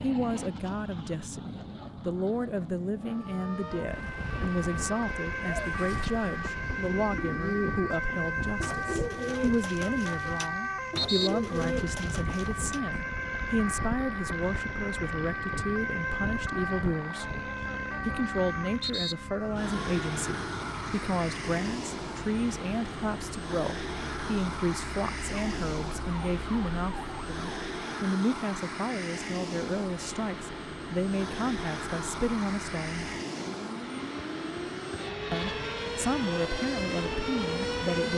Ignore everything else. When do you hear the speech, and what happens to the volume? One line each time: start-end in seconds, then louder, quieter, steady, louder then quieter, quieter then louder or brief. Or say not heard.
0.0-17.2 steady
18.1-33.1 steady
35.3-38.1 brief.